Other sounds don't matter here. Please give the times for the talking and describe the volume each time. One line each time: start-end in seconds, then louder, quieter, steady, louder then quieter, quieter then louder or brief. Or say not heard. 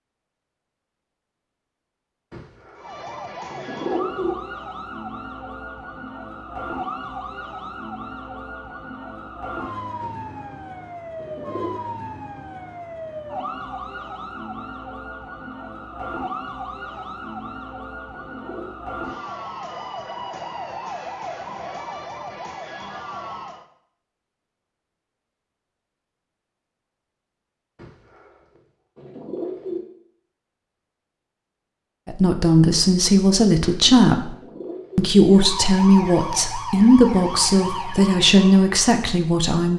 32.0-34.3 brief
35.0-39.7 steady.